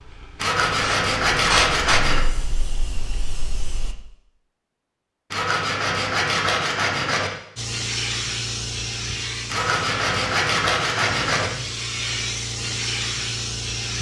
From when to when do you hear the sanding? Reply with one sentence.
You can hear the sanding from 0.3 to 2.2 s, from 5.3 to 7.3 s and from 9.5 to 11.5 s.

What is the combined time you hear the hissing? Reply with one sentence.
The hissing can be heard for 10 seconds in total.